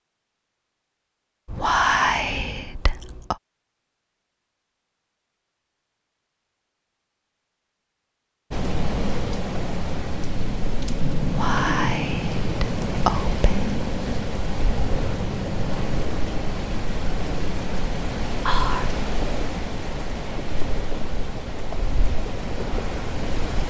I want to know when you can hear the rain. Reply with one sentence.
You can hear the rain from 8.5 to 23.6 s.